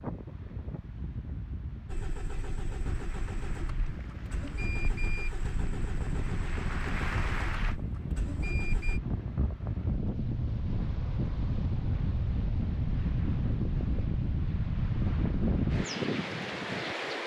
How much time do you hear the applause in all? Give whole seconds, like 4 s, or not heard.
5 s.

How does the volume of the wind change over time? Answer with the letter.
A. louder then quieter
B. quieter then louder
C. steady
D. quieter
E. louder
E.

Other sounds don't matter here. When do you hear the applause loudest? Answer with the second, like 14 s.
7 s.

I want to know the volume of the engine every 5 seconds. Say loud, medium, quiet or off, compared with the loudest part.
loud, loud, off, off.